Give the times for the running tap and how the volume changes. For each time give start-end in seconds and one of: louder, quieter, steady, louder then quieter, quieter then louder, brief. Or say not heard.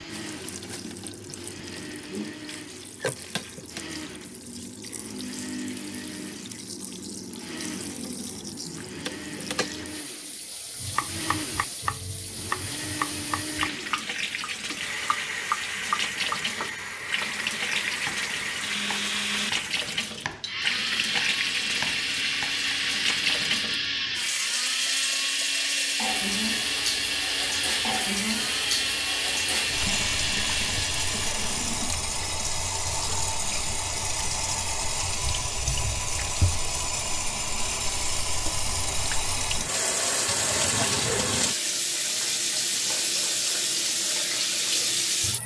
0.0-45.4 louder.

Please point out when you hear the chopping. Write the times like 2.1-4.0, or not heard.
10.8-22.8.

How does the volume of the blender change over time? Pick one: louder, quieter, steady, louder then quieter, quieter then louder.
louder.